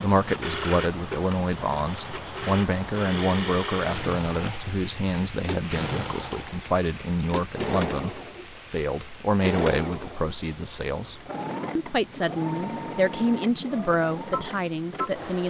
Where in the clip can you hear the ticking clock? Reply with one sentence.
You can't hear the ticking clock here.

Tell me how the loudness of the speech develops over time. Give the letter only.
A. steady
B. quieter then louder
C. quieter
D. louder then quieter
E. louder
A.